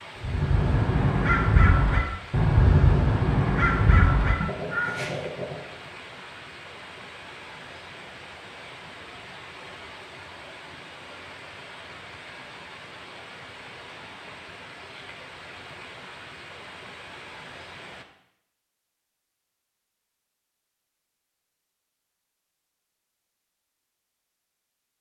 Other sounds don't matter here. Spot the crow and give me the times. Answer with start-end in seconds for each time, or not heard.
0.2-5.6.